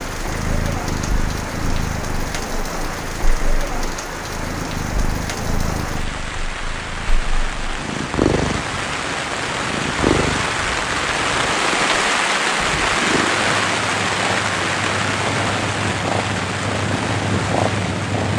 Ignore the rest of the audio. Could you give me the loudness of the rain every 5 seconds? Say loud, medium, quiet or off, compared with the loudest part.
medium, medium, loud, medium.